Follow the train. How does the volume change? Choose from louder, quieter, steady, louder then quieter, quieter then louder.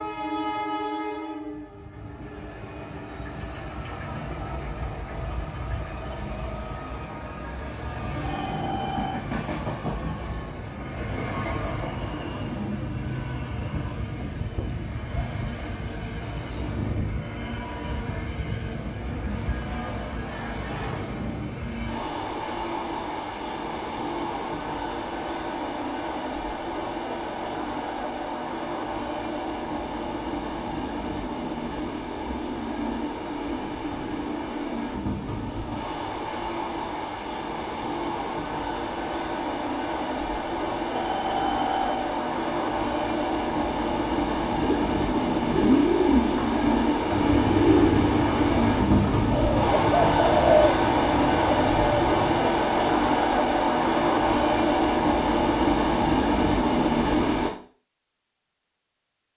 louder.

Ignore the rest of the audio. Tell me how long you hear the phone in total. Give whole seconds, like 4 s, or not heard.
2 s.